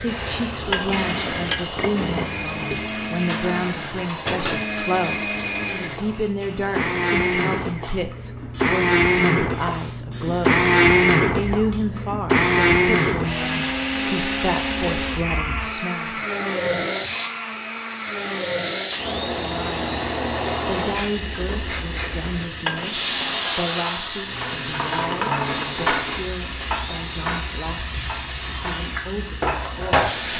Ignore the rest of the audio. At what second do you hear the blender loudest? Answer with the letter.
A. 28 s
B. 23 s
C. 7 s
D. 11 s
D.